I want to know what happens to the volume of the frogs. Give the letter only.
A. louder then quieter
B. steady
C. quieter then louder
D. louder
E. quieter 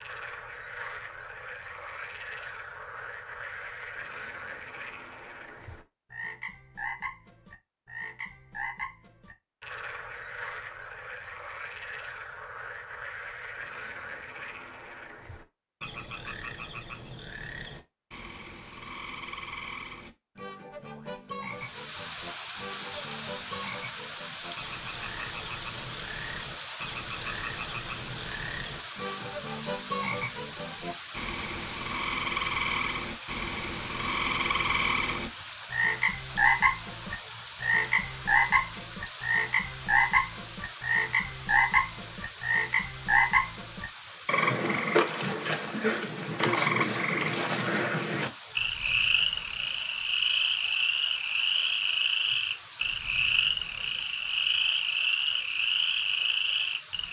D.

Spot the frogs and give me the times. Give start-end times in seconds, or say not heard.
0.0-57.0.